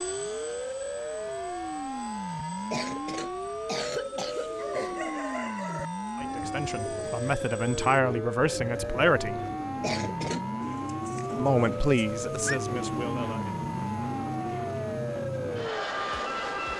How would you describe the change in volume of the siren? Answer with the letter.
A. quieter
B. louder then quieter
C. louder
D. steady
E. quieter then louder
D.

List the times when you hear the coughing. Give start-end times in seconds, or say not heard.
2.7-5.0, 9.8-10.4.